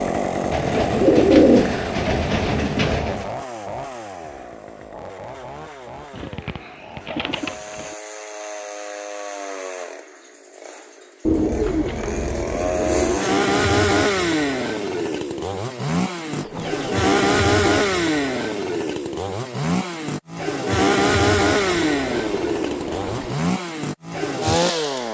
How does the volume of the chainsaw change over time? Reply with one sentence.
The volume of the chainsaw goes down, then up.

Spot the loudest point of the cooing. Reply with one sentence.
The volume of the cooing peaks at 1 second.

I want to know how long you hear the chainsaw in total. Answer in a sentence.
The chainsaw can be heard for 25 seconds in total.